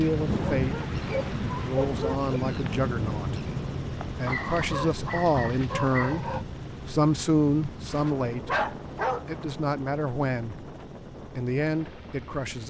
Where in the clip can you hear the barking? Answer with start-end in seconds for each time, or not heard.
0.6-2.3, 4.2-6.5, 8.4-9.2.